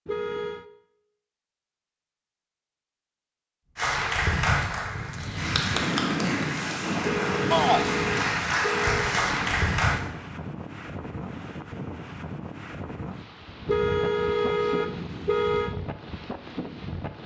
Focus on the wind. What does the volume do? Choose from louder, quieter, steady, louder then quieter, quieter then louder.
quieter.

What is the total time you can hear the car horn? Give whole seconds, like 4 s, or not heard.
5 s.